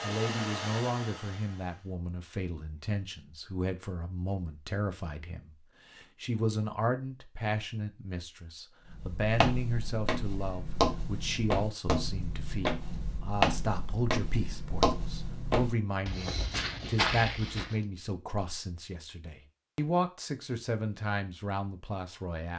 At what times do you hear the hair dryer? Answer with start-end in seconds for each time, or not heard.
0.0-1.9.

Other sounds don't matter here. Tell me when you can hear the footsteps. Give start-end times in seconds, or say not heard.
8.9-17.8.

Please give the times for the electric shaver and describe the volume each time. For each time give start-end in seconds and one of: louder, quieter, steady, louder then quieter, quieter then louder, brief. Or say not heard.
not heard.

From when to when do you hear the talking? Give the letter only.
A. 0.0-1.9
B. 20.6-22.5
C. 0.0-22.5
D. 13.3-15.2
C.